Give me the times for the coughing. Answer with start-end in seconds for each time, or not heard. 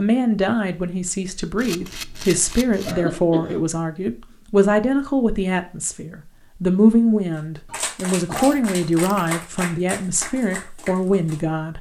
2.9-3.6, 7.7-9.2.